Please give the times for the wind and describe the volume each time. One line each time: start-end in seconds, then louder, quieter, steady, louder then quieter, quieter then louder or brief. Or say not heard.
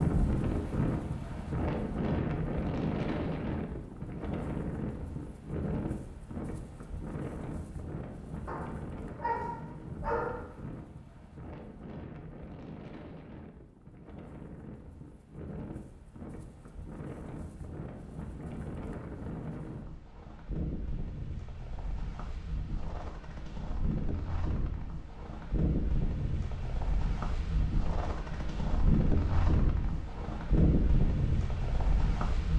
0.0-32.5 quieter then louder.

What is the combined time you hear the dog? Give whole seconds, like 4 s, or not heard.
2 s.